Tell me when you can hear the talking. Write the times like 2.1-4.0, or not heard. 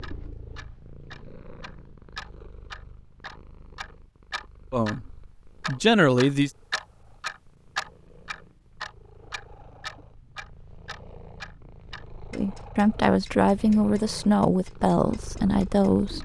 4.7-6.5, 12.3-16.1.